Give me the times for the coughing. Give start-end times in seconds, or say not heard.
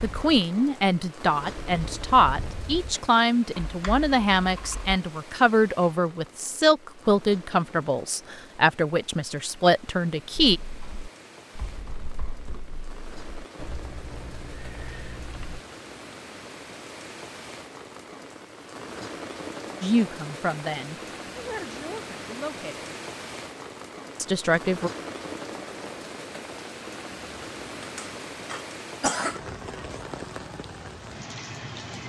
27.8-29.4.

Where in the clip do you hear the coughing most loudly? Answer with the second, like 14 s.
29 s.